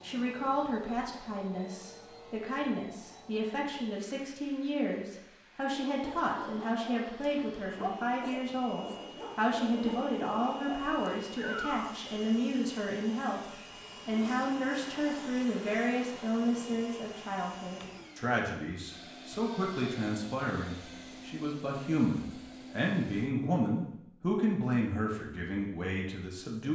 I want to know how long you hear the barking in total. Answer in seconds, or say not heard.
6 s.